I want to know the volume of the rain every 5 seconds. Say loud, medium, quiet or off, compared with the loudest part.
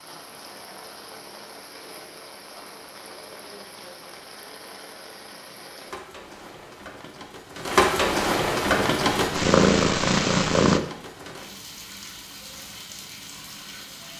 quiet, loud, quiet.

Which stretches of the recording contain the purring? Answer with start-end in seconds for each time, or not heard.
8.7-10.8.